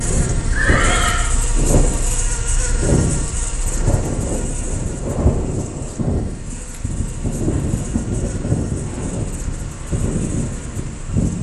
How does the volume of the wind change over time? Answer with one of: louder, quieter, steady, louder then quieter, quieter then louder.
steady.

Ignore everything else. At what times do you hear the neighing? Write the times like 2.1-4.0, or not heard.
0.5-1.2.